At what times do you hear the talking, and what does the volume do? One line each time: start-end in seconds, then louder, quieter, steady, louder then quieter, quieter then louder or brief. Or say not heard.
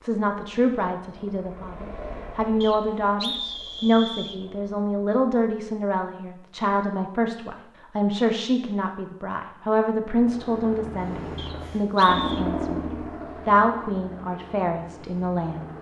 0.0-12.8 steady
13.4-15.7 brief.